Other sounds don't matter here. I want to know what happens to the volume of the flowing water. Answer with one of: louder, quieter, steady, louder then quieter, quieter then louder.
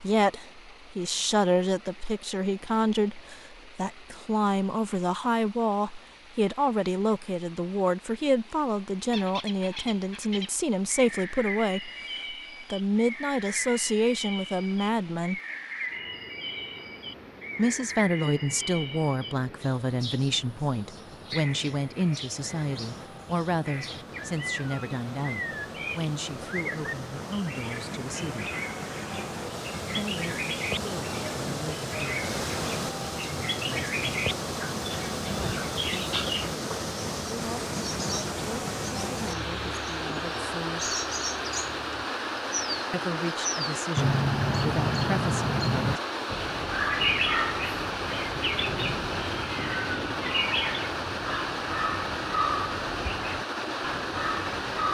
louder.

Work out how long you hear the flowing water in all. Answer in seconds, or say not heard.
55 s.